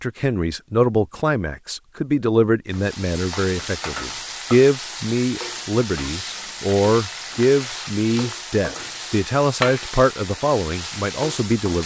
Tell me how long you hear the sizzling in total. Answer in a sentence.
The sizzling can be heard for 9 seconds in total.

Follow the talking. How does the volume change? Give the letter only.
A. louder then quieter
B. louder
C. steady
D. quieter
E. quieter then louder
C.